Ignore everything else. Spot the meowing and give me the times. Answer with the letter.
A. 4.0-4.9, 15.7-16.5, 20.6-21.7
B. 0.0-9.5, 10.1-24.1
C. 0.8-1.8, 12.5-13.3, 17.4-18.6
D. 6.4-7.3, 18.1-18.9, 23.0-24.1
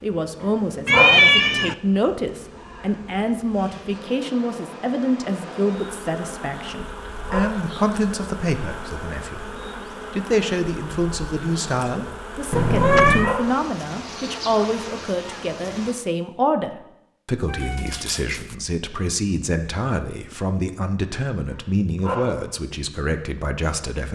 C.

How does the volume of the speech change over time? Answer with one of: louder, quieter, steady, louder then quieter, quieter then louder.
steady.